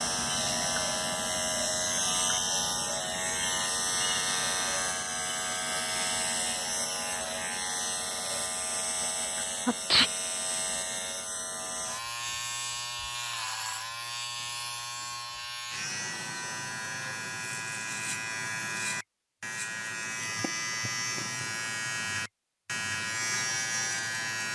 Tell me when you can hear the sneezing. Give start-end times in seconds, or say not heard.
9.3-10.1.